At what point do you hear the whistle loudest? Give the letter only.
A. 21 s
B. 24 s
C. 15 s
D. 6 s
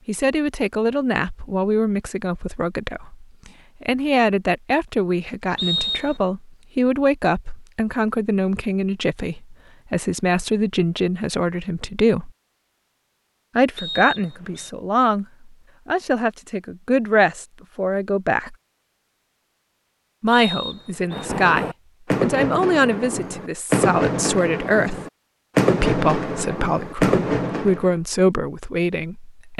D.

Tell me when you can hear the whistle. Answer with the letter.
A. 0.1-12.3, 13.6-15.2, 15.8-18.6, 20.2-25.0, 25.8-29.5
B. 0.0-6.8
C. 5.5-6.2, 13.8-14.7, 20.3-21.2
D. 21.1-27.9
C.